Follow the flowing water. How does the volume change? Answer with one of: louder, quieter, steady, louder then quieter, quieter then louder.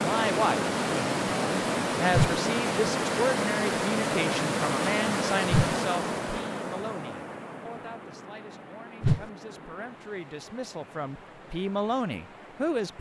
quieter.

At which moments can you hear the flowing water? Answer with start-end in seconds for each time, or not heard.
0.0-12.9.